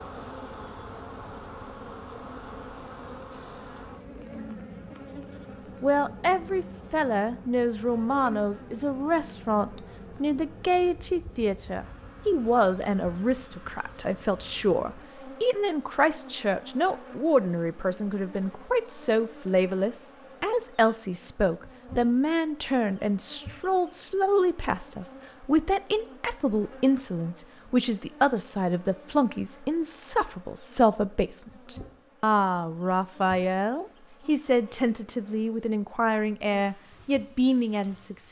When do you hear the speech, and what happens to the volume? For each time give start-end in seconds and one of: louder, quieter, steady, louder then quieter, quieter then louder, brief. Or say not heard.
5.8-38.2 steady.